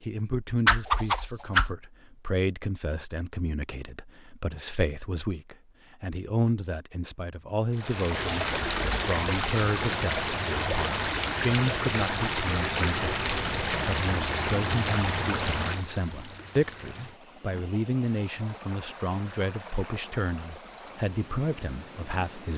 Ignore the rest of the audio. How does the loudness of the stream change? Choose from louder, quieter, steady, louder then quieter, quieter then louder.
quieter.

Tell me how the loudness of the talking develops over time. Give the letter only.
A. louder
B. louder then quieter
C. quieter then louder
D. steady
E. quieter
D.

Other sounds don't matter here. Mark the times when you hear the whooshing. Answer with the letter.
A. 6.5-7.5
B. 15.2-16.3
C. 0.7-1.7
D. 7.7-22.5
C.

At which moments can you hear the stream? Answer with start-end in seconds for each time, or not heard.
7.7-22.5.